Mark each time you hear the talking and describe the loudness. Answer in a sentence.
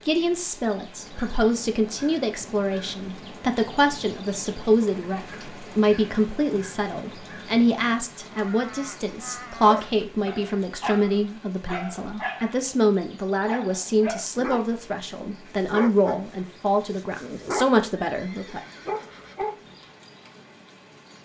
The talking can be heard from 0.1 to 18.6 s, at a steady volume.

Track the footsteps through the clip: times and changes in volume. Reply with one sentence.
You can't hear the footsteps here.